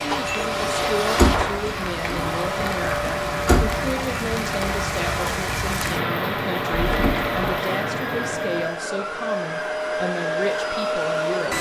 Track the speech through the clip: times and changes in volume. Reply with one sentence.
You can hear the speech from 0.0 to 11.5 s, at a steady volume.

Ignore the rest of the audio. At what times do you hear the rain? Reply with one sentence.
The rain can be heard from 0.0 to 8.8 s.